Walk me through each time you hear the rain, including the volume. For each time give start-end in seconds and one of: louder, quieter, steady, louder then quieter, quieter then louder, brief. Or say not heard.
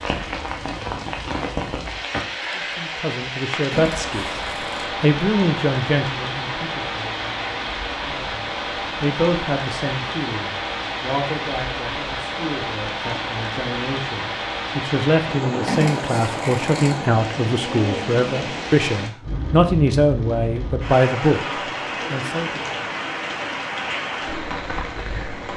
0.0-25.5 steady.